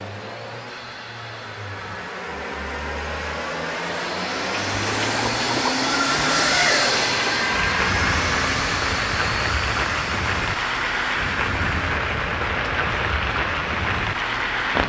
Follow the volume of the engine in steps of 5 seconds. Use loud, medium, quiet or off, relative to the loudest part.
medium, loud, medium.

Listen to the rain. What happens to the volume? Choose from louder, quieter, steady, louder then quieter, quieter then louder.
steady.